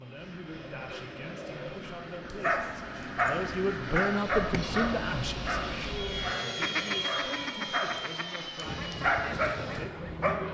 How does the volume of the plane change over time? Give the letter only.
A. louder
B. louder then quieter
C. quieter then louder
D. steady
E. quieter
B.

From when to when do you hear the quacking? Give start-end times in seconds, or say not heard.
0.1-10.4.